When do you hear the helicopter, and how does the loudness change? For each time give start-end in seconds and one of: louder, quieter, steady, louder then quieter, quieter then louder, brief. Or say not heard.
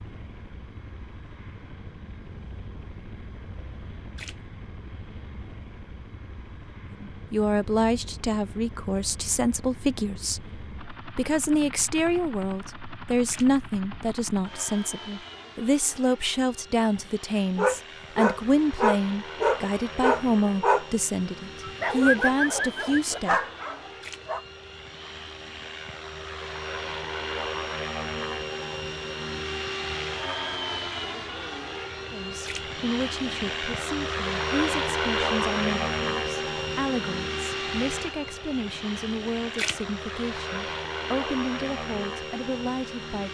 0.0-43.3 louder.